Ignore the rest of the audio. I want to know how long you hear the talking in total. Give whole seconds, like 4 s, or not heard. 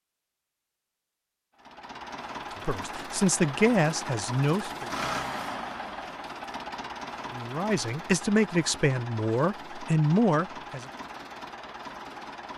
6 s.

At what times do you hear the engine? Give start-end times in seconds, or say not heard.
1.6-12.5.